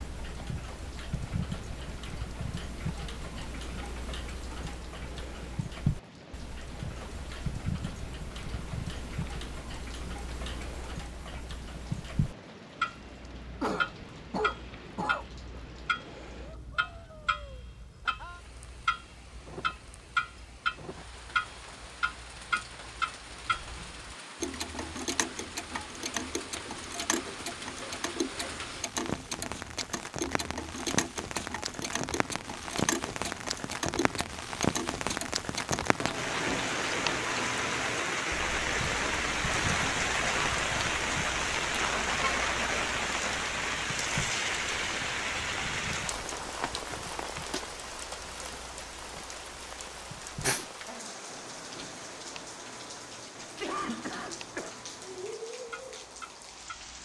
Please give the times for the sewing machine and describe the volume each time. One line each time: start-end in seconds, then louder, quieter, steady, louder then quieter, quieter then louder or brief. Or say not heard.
not heard.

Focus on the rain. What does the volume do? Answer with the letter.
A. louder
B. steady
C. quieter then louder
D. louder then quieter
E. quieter
D.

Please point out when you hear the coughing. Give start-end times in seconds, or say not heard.
13.6-15.2, 53.5-54.8.